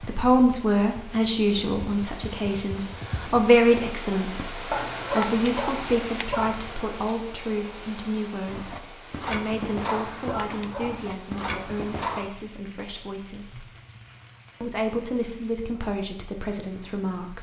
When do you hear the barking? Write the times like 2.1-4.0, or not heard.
4.7-6.7, 9.8-11.4.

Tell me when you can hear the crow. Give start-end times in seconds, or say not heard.
not heard.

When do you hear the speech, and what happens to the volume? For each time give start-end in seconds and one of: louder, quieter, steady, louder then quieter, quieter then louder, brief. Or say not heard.
0.0-13.7 quieter
14.6-17.3 brief.